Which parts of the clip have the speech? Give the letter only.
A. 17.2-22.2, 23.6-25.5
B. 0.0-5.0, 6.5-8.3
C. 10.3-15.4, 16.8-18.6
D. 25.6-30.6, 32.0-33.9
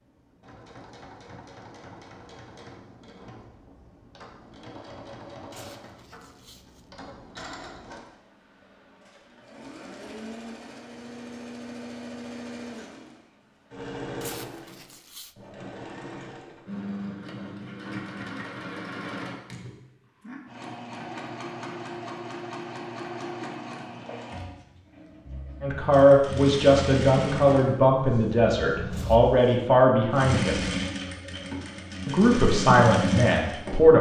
D.